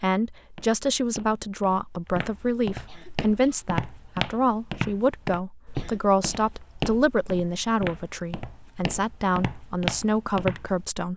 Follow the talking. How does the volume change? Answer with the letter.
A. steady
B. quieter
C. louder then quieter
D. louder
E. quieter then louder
A.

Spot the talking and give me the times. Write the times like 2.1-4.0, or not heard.
0.0-11.1.